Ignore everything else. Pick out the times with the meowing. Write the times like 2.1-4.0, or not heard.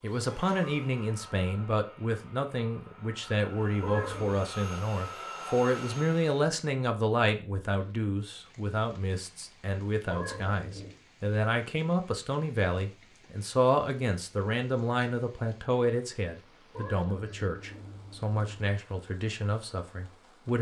3.8-4.4, 10.1-10.9, 16.7-18.8.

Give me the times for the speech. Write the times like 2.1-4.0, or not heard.
0.0-20.5.